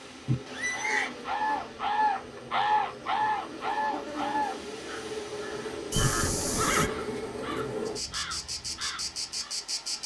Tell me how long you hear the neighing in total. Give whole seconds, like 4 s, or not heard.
2 s.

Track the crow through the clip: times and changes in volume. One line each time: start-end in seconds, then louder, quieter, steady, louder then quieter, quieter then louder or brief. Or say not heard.
0.7-9.6 quieter.